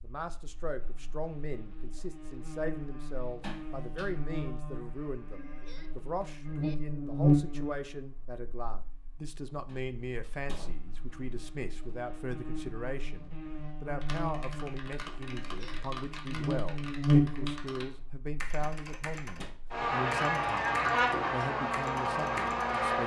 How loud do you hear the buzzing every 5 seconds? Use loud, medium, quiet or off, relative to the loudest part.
quiet, loud, quiet, loud, loud.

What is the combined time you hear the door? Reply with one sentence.
The door can be heard for 3 seconds in total.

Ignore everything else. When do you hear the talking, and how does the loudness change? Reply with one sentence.
The talking can be heard from 0.0 to 23.0 s, at a steady volume.